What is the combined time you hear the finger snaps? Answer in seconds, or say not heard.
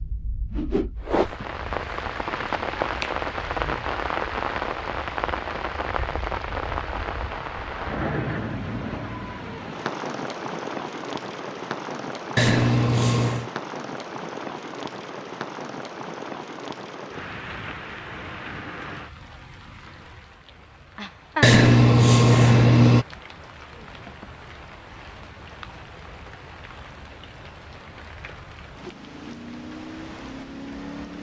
5 s.